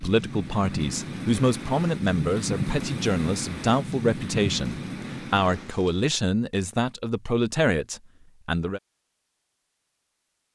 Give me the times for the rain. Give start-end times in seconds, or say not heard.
0.0-6.1.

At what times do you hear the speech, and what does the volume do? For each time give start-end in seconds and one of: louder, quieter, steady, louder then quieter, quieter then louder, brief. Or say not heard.
0.0-8.8 steady.